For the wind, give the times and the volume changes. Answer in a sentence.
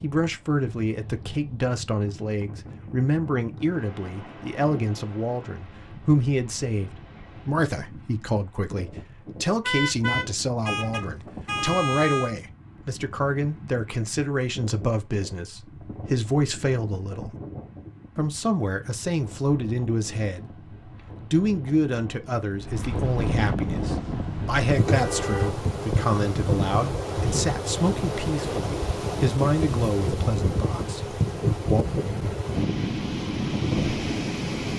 The wind can be heard from 0.0 to 34.7 s, getting louder.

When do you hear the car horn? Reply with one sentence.
The car horn can be heard from 9.6 to 12.3 s and from 24.9 to 25.5 s.